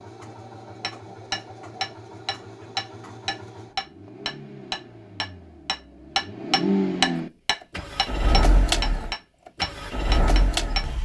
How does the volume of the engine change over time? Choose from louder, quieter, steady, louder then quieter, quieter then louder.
louder.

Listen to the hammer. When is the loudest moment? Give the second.
7 s.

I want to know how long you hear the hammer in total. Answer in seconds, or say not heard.
10 s.